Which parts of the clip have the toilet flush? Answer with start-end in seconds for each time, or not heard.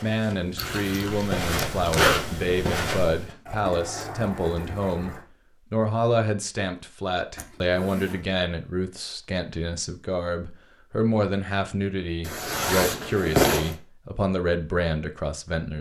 3.5-5.2.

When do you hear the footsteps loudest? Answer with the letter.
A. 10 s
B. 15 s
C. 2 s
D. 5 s
C.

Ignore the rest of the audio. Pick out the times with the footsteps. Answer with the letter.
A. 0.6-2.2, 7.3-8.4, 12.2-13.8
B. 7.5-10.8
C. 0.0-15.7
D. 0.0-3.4
D.